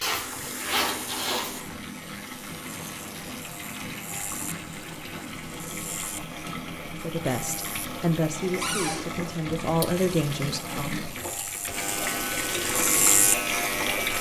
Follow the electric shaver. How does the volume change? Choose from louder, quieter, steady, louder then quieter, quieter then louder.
louder.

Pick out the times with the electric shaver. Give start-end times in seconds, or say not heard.
0.2-14.1.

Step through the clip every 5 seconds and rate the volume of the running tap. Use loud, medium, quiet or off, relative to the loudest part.
medium, loud, loud.